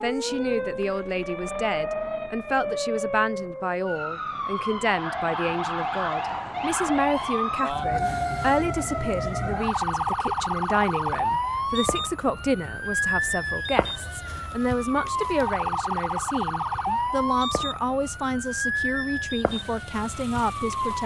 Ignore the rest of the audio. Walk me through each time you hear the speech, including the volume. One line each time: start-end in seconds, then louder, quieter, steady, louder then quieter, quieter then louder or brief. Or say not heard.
0.0-21.0 steady.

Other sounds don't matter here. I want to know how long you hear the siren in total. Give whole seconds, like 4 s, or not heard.
21 s.